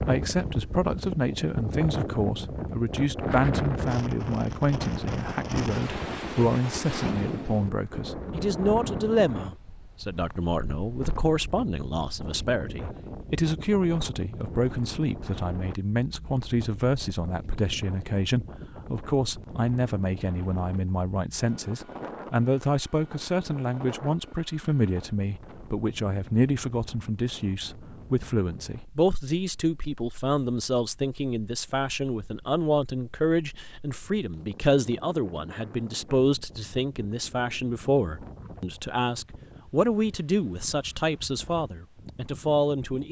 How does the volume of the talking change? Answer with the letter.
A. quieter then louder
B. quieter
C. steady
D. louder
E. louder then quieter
C.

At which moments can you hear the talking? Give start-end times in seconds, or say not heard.
0.0-43.0.